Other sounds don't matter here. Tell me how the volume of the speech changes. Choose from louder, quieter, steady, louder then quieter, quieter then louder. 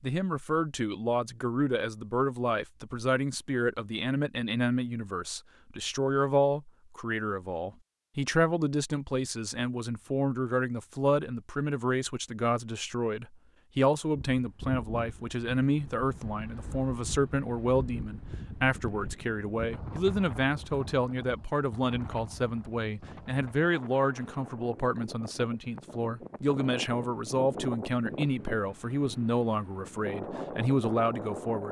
steady.